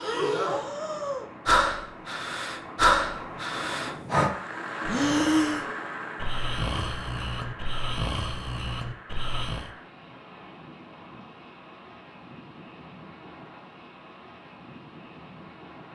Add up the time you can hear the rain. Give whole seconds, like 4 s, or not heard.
16 s.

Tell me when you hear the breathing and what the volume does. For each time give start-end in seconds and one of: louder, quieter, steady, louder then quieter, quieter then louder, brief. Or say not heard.
0.0-9.7 quieter.